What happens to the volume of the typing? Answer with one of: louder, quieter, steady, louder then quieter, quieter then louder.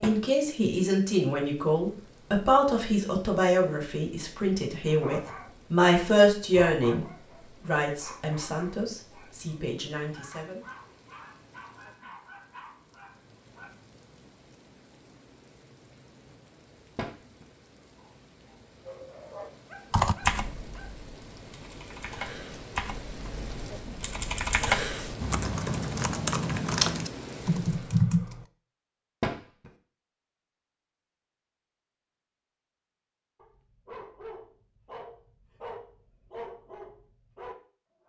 louder.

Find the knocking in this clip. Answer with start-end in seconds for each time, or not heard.
0.0-0.5, 16.9-17.4, 29.2-29.7.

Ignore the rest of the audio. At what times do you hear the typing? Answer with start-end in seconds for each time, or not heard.
19.9-28.4.